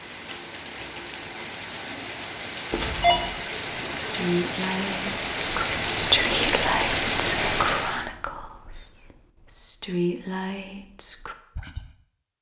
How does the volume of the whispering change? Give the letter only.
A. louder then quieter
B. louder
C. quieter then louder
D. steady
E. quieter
A.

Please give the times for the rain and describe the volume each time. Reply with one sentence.
You can hear the rain from 0.0 to 8.1 s, getting louder.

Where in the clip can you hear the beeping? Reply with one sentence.
You can hear the beeping from 2.7 to 3.3 s.